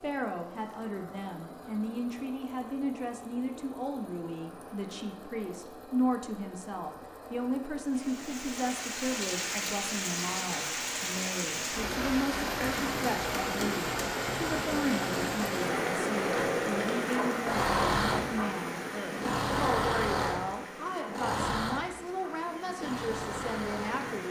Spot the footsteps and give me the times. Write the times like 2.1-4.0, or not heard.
not heard.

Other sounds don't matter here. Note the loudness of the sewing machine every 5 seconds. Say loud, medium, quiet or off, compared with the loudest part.
quiet, quiet, medium, loud, loud.